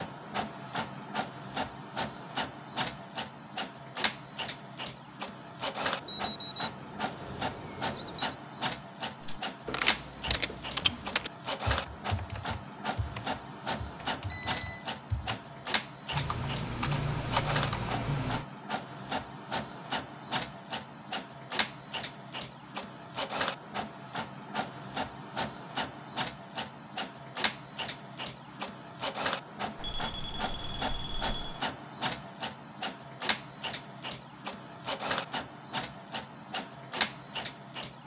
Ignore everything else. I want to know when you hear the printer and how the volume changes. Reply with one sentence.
The printer can be heard from 0.0 to 38.0 s, at a steady volume.